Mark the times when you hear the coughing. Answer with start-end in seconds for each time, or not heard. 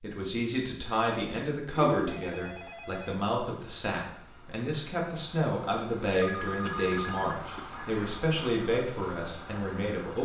1.7-2.2, 6.7-7.8.